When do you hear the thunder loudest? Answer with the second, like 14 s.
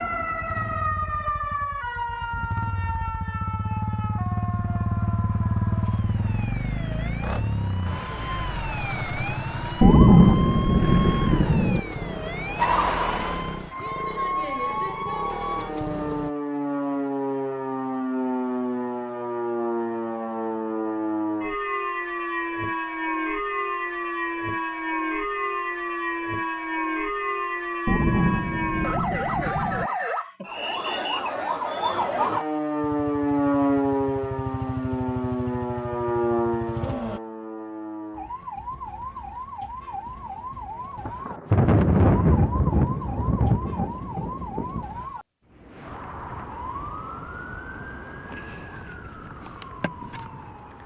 10 s.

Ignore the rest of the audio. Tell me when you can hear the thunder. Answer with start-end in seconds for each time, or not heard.
9.8-11.8, 27.9-29.9, 41.0-45.0.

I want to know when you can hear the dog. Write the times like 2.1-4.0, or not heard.
not heard.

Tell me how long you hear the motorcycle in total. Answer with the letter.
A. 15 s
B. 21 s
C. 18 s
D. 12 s
B.